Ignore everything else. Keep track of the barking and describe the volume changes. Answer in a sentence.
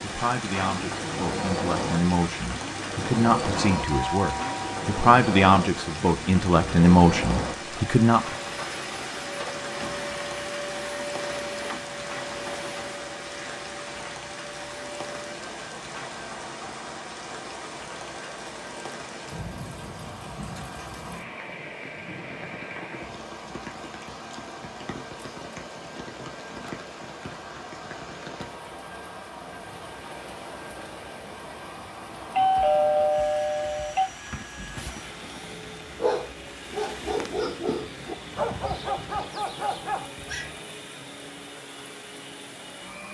The loudness of the barking goes up.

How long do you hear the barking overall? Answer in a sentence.
The barking can be heard for 6 seconds in total.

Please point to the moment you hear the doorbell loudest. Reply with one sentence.
The loudest moment of the doorbell is at 33 seconds.